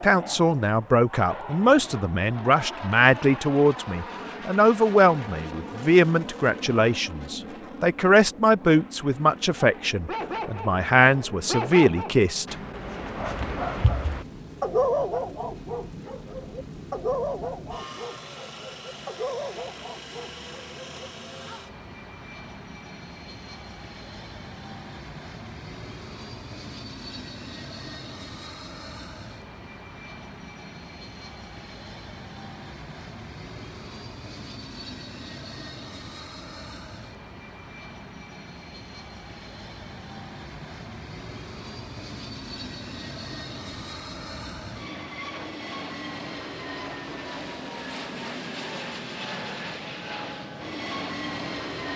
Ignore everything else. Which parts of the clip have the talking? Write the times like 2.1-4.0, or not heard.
0.0-12.6.